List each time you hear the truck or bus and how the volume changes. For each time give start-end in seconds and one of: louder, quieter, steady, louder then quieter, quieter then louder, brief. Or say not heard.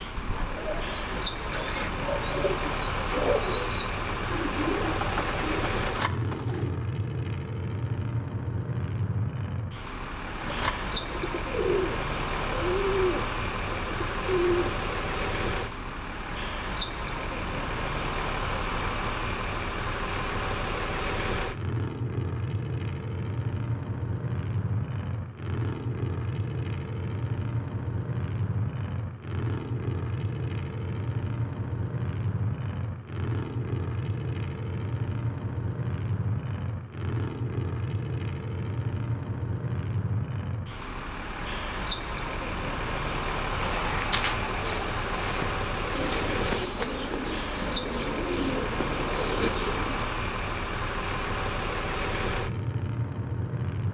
0.0-53.8 steady.